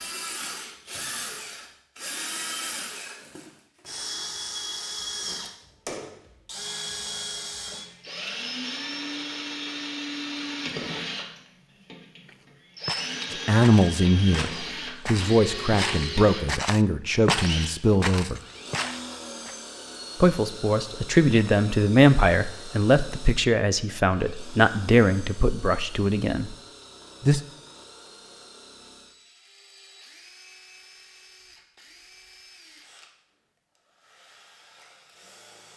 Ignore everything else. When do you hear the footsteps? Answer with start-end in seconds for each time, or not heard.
12.2-19.6.